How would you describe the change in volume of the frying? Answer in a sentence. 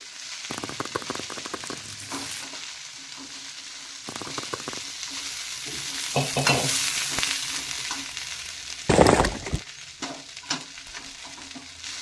The loudness of the frying goes up, then down.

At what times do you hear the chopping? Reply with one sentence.
You can't hear the chopping here.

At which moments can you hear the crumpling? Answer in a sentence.
You can hear the crumpling from 0.5 to 2.5 s, from 4.0 to 4.9 s and from 8.8 to 9.6 s.